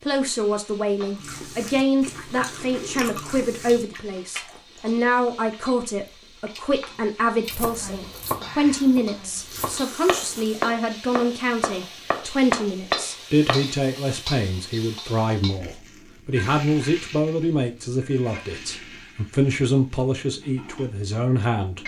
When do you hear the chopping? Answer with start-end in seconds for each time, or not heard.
7.5-13.7.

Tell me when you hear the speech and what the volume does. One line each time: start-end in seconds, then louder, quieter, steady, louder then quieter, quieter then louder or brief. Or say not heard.
0.0-21.8 steady.